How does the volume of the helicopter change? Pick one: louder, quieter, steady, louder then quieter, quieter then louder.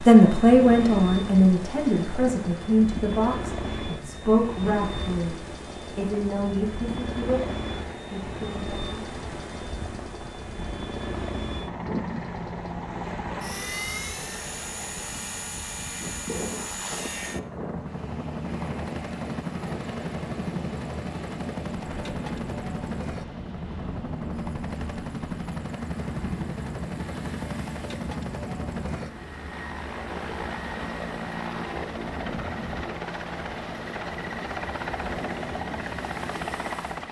steady.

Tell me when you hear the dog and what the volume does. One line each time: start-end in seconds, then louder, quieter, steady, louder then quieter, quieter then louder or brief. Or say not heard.
not heard.